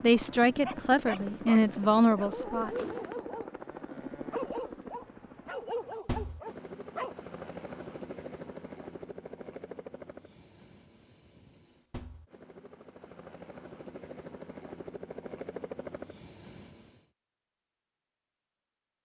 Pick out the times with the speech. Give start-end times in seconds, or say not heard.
0.0-2.7.